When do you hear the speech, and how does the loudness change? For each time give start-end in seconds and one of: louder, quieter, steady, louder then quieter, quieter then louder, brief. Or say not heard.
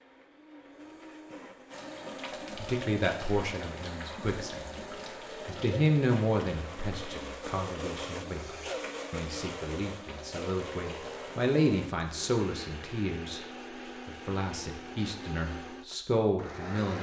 2.5-4.8 brief
5.5-13.4 quieter then louder
14.1-16.9 brief.